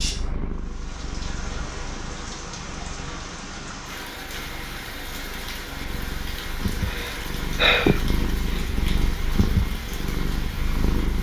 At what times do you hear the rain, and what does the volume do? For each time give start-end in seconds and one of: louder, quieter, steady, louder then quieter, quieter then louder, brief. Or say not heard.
0.0-11.1 steady.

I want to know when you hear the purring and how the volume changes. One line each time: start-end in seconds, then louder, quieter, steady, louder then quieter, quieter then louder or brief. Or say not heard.
0.0-11.1 quieter then louder.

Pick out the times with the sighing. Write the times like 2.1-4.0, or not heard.
6.8-8.7.